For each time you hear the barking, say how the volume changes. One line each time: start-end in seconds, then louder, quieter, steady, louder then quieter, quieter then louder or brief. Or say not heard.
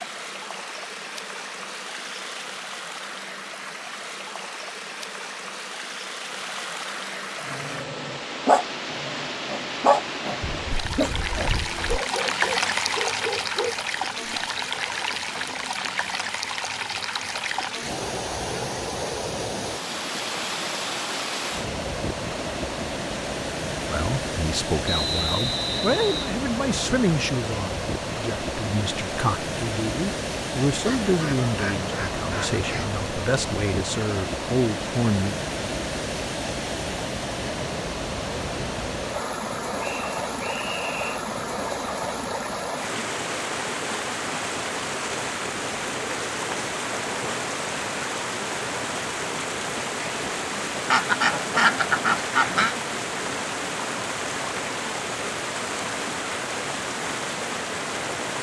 7.3-13.8 quieter.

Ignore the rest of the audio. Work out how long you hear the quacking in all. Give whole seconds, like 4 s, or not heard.
5 s.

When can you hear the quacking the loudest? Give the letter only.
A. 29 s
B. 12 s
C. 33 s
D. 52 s
D.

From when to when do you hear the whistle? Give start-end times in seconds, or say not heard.
24.9-26.4, 39.8-41.2.